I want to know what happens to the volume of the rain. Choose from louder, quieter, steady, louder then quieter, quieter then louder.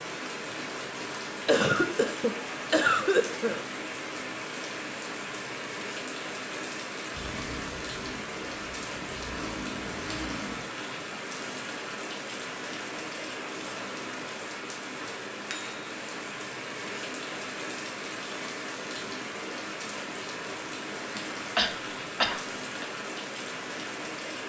steady.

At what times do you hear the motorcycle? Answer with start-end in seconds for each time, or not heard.
7.1-10.7.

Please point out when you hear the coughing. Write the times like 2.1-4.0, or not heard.
1.4-3.6, 21.6-22.9.